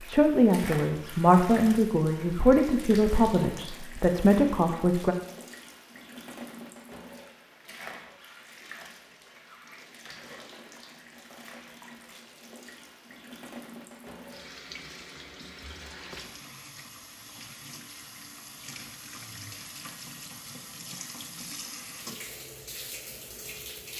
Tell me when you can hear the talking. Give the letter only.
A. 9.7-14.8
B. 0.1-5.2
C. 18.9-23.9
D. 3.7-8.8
B.